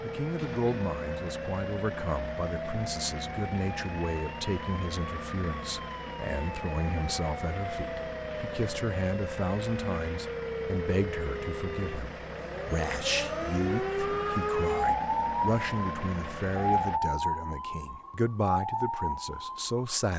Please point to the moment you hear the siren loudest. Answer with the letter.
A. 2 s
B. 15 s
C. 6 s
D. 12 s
B.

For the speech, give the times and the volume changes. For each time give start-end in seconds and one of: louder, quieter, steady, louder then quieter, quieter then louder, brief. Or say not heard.
0.0-20.1 steady.